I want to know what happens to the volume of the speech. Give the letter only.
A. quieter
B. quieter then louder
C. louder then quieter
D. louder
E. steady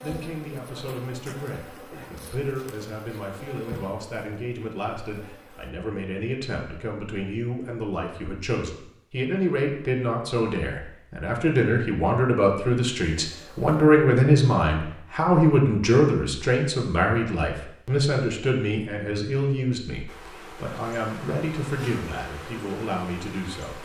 C.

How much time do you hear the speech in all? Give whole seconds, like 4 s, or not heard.
24 s.